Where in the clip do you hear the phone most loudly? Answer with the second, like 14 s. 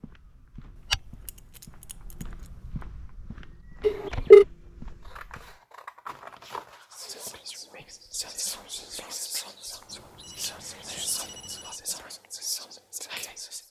4 s.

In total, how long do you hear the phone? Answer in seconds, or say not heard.
3 s.